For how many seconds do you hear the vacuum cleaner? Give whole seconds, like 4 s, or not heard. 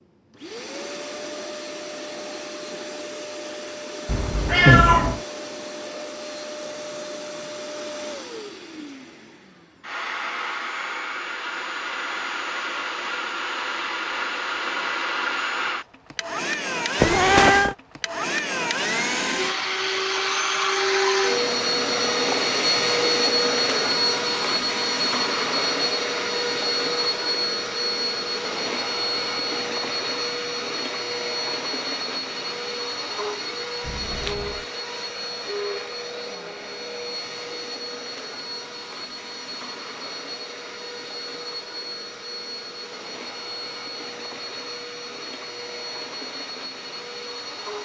48 s.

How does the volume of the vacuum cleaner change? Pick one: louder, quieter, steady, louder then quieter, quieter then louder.
louder then quieter.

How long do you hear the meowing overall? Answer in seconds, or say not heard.
3 s.